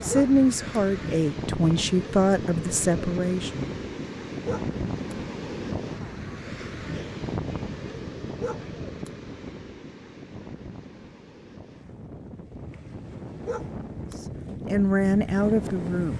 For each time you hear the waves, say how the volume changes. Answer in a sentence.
The waves can be heard from 0.0 to 16.1 s, getting quieter then louder.